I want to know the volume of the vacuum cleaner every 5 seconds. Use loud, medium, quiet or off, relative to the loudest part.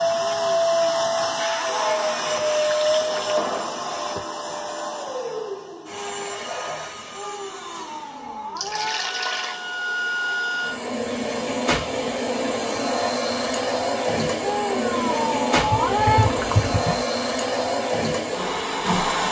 loud, medium, loud, loud.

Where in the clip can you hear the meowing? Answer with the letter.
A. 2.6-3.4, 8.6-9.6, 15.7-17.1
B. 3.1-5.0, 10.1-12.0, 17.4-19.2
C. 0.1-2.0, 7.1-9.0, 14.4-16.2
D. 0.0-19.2
C.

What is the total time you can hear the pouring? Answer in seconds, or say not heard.
3 s.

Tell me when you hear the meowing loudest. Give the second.
16 s.